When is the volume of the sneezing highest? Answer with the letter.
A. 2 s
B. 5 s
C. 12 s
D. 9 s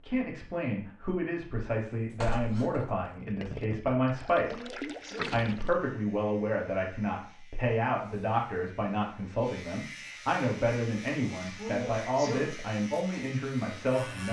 C.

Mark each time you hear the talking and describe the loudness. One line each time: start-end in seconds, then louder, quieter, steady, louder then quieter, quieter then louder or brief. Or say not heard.
0.0-14.2 steady.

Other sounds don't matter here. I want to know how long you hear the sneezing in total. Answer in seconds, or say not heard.
2 s.